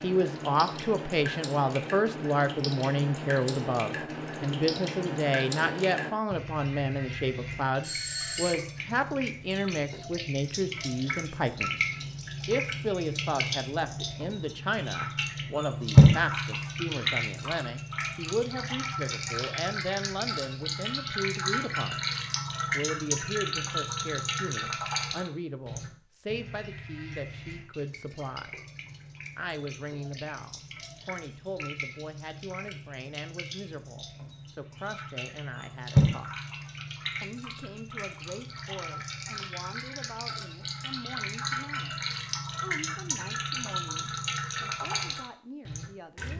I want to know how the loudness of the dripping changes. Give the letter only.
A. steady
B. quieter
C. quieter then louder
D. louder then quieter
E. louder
D.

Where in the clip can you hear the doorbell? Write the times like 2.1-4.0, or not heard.
7.8-8.6.